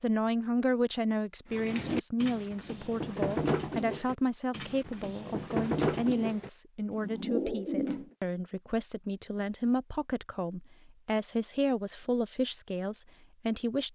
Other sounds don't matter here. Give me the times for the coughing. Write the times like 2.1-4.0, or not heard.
not heard.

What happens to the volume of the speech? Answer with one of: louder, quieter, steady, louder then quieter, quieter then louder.
steady.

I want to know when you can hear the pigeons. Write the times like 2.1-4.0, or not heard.
1.5-8.1.